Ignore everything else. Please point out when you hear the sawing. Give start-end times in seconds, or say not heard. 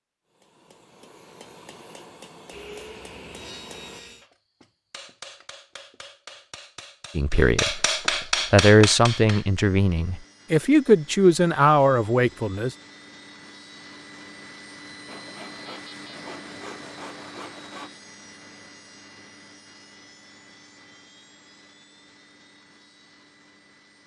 2.5-4.2, 15.1-17.9.